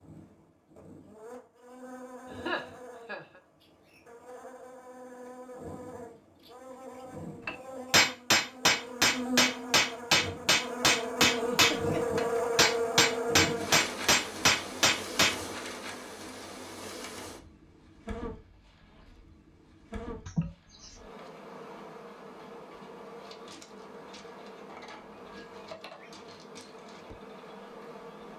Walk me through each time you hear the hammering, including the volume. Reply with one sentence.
The hammering can be heard from 7.5 to 15.3 s, at a steady volume.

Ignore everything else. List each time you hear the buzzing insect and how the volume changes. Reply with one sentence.
The buzzing insect can be heard from 0.0 to 28.3 s, getting louder then quieter.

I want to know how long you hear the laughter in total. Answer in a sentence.
You can hear the laughter for 3 seconds altogether.